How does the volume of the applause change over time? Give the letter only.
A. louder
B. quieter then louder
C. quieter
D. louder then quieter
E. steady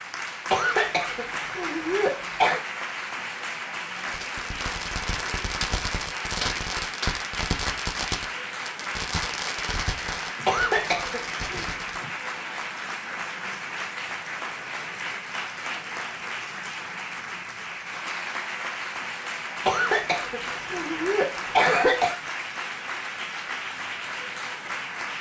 E.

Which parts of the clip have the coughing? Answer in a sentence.
You can hear the coughing from 0.5 to 2.6 s, from 10.4 to 11.7 s and from 19.6 to 22.1 s.